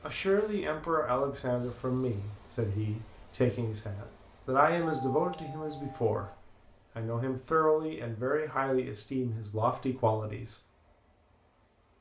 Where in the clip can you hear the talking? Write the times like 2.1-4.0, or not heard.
0.0-10.6.